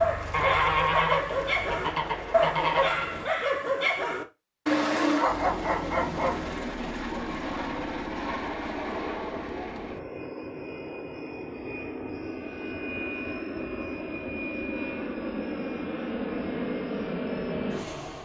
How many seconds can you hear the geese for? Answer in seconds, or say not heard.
3 s.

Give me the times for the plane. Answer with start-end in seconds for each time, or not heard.
0.0-3.3, 5.2-18.2.